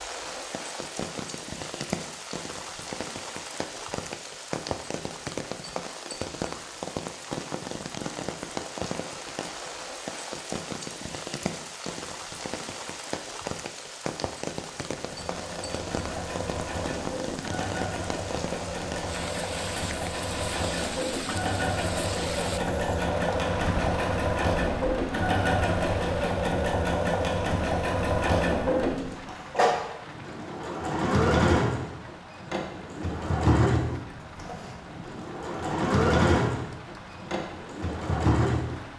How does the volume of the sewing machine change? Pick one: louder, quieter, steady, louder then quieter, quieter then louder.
louder.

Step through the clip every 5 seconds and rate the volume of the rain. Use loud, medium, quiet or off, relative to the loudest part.
loud, loud, loud, loud, loud, medium, medium, medium.